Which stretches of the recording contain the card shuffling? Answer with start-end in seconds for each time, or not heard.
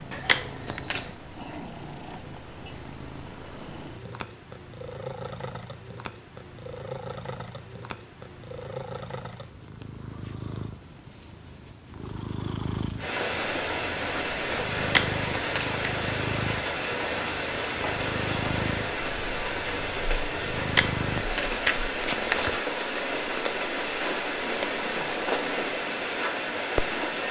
0.1-1.1, 14.8-15.9, 20.6-22.6.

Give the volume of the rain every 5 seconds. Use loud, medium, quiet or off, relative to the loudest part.
off, off, loud, loud, loud, loud.